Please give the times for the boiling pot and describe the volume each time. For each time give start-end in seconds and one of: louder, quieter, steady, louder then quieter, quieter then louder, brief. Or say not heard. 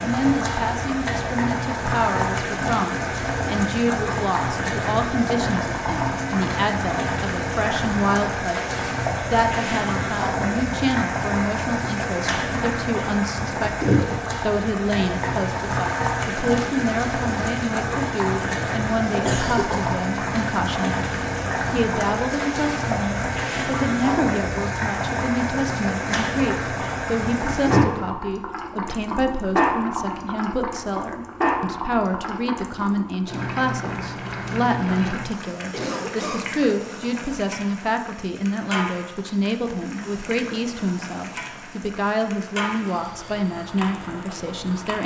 0.0-45.0 quieter.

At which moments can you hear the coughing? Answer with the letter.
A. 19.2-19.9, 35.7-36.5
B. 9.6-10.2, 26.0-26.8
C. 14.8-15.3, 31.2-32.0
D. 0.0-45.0
A.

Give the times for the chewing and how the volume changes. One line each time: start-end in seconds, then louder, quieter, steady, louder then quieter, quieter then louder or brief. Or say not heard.
not heard.